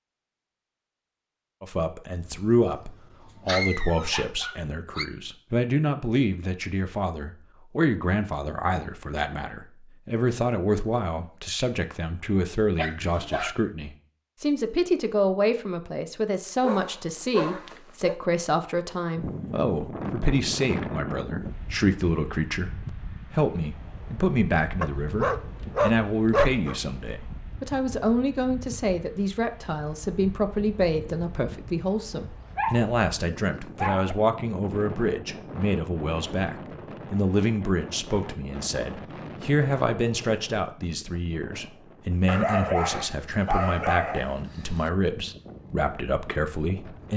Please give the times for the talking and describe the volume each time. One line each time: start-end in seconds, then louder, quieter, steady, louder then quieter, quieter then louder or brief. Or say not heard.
1.6-47.1 steady.